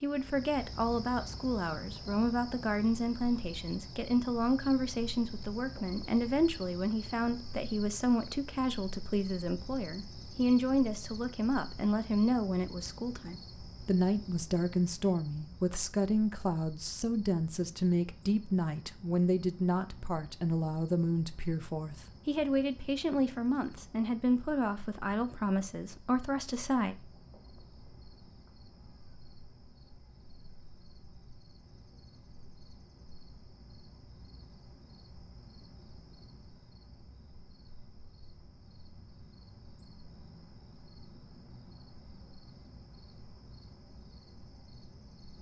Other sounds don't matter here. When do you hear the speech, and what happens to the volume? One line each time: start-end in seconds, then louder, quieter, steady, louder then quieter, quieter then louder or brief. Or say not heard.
0.0-26.9 steady.